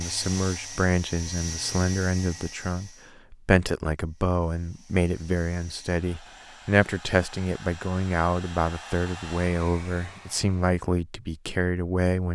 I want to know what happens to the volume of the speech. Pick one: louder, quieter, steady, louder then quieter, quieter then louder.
steady.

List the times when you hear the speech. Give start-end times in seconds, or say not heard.
0.0-12.2.